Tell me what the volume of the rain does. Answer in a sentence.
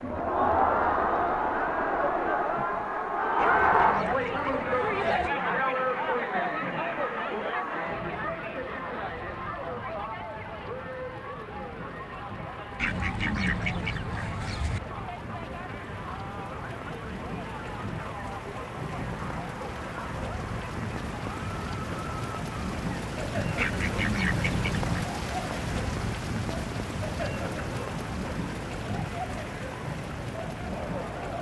The loudness of the rain goes up.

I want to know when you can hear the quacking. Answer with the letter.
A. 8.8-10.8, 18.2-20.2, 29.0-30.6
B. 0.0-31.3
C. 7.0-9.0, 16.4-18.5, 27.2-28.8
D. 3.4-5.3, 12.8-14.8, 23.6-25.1
D.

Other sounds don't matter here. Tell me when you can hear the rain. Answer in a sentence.
You can hear the rain from 0.0 to 31.3 s.